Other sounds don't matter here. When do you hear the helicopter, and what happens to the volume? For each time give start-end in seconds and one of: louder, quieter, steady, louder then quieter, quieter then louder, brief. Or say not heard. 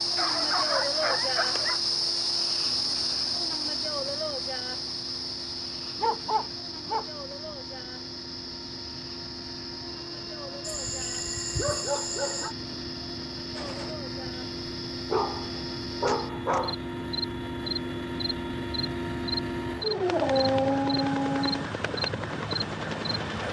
0.0-23.4 louder.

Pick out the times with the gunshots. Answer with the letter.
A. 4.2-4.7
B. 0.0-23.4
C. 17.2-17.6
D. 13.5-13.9
D.